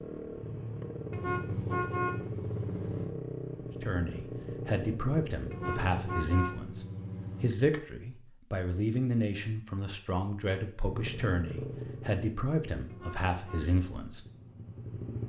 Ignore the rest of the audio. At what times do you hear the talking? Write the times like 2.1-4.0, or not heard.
3.8-14.2.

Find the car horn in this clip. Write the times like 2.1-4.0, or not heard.
1.1-3.1, 5.5-7.5, 12.9-13.7.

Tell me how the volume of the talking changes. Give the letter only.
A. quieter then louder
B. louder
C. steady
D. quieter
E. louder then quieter
C.